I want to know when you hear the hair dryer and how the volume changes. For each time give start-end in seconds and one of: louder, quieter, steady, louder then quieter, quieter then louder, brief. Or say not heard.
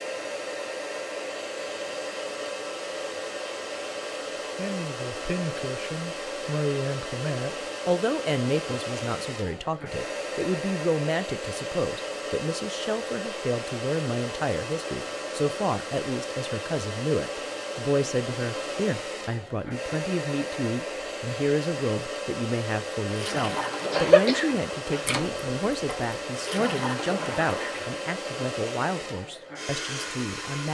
0.0-30.6 steady.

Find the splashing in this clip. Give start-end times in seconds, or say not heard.
23.1-28.0.